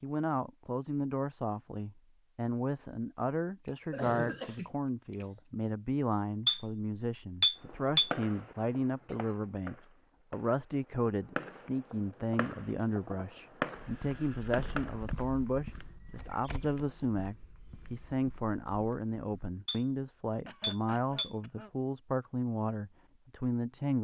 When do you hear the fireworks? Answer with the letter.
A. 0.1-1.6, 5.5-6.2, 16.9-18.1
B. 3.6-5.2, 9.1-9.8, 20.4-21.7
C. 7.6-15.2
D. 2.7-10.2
C.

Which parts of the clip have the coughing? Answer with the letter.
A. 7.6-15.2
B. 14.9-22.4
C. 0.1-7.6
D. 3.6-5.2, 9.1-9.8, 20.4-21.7
D.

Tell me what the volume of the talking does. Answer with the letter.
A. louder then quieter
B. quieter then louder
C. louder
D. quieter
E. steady
E.